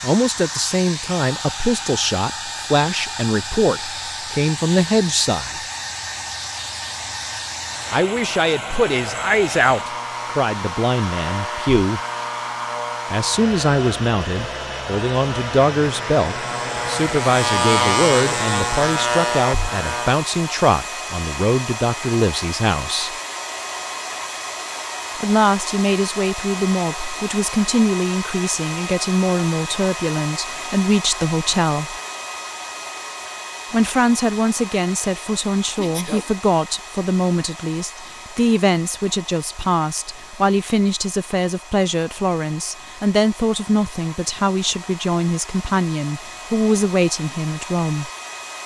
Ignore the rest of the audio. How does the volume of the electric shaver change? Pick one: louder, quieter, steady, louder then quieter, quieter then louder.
louder.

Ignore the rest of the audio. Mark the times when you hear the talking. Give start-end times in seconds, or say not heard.
0.0-5.6, 7.9-12.0, 13.1-23.1, 25.1-31.9, 33.7-48.1.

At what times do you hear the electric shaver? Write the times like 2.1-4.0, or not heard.
7.6-20.2.